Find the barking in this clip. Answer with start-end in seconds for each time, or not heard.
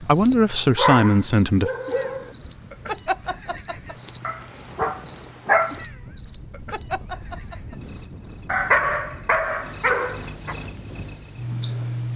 0.8-2.3, 4.2-5.8, 8.4-10.6.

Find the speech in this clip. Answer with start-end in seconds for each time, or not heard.
0.0-1.7.